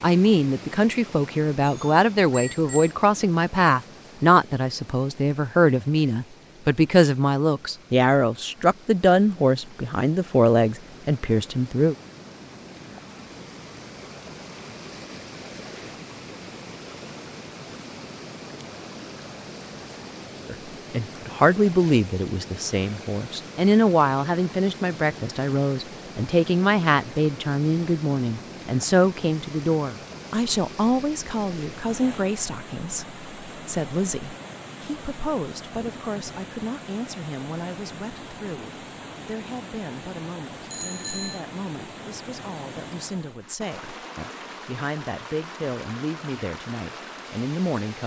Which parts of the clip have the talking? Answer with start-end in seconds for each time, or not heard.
0.0-11.9, 20.4-48.0.